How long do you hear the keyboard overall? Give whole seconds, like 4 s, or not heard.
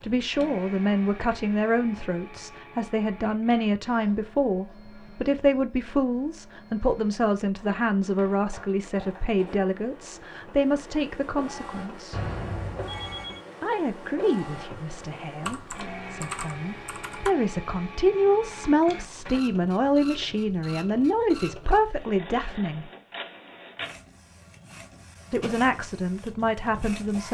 2 s.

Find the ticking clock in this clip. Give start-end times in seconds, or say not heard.
not heard.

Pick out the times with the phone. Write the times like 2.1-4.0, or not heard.
12.1-13.4.